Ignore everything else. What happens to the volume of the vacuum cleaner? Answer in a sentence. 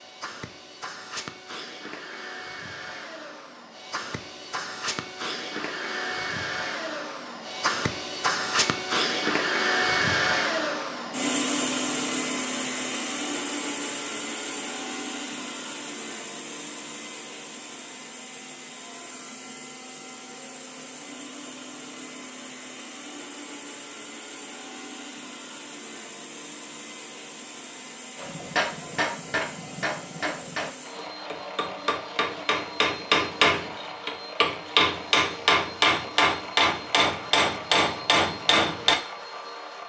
The volume of the vacuum cleaner goes up, then down.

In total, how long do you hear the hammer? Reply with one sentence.
The hammer can be heard for 11 seconds in total.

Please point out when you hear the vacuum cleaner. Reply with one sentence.
The vacuum cleaner can be heard from 0.0 to 39.8 s.